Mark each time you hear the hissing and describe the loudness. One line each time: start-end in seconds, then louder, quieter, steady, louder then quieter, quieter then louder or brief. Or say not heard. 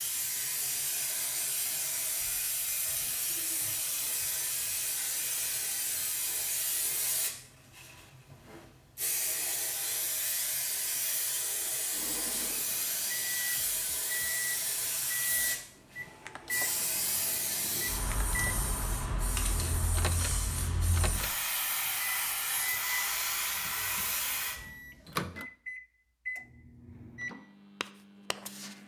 0.0-24.6 steady.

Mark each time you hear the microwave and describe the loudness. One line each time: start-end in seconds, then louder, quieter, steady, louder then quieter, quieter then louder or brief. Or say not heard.
11.9-28.8 steady.